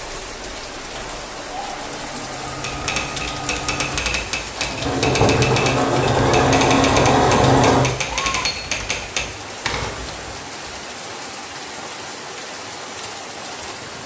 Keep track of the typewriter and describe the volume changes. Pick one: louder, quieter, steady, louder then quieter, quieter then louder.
steady.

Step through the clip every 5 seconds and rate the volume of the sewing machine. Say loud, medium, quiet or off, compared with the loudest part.
quiet, loud, off.